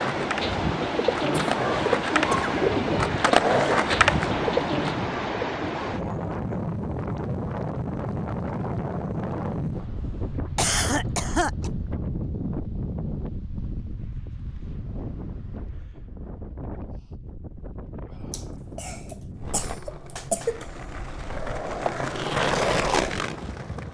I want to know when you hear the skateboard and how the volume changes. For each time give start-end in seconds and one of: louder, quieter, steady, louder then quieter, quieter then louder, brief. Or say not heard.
0.0-4.9 louder
19.4-23.8 louder.